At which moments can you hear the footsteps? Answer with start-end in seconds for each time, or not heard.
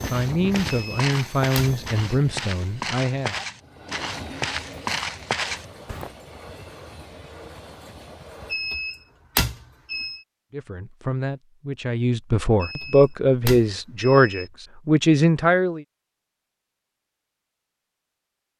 0.0-6.1.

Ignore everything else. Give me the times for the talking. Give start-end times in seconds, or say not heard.
0.1-3.4, 10.5-15.8.